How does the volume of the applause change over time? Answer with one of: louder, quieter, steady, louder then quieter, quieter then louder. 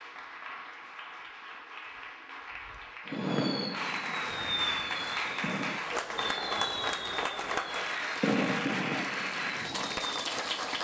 louder.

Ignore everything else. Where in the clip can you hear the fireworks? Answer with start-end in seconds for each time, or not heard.
3.1-10.2.